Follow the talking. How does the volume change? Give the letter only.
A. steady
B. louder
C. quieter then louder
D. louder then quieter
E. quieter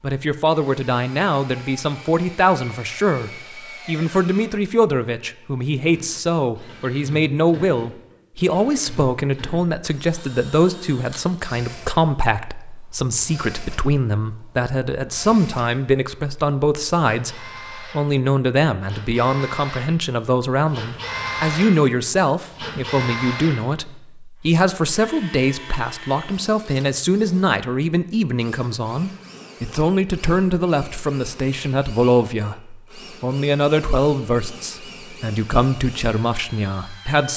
A.